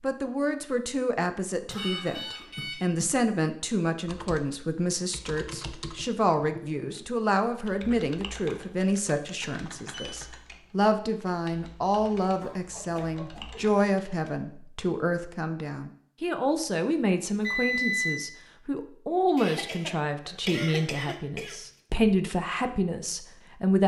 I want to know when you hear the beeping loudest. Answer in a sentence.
The volume of the beeping peaks at 18 seconds.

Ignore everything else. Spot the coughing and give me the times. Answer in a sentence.
The coughing can be heard from 1.6 to 3.2 s, from 12.4 to 13.7 s and from 19.4 to 21.6 s.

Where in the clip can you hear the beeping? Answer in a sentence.
The beeping can be heard from 1.8 to 2.9 s, from 9.4 to 10.2 s and from 17.4 to 18.2 s.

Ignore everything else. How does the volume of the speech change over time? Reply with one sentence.
The loudness of the speech stays about the same.